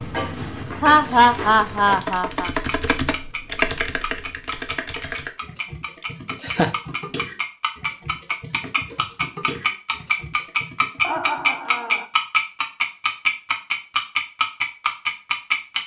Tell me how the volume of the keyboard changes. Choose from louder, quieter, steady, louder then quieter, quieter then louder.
quieter.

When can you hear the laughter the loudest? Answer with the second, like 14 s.
1 s.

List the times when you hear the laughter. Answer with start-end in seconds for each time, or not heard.
0.8-2.5, 6.0-6.8, 11.0-12.1.